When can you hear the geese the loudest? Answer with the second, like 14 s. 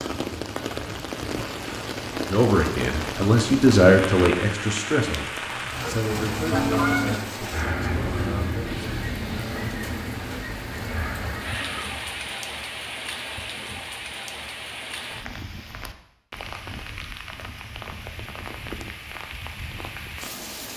7 s.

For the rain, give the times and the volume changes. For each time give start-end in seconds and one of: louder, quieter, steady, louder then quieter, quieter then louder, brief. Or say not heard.
0.0-20.7 quieter.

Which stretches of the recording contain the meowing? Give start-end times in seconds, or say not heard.
not heard.